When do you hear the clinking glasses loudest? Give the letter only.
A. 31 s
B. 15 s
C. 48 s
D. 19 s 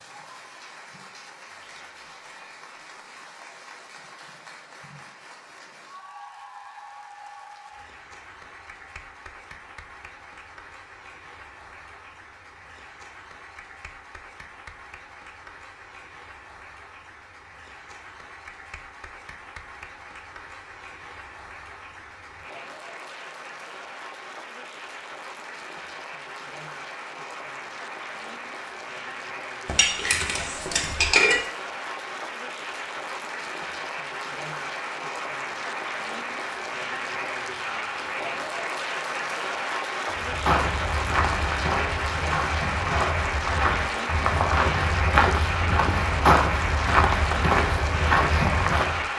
A.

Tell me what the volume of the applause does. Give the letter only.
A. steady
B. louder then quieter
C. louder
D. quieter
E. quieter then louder
C.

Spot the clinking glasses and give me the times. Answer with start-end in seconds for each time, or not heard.
29.6-31.4.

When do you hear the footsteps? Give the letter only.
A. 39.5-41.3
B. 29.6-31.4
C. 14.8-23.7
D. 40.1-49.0
D.